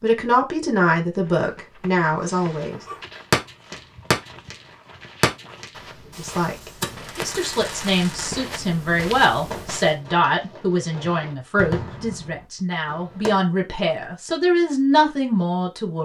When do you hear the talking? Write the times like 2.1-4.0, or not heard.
0.0-2.8, 6.2-15.9.